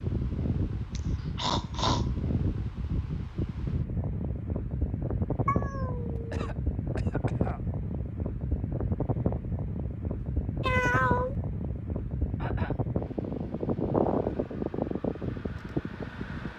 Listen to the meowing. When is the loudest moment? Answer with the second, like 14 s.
11 s.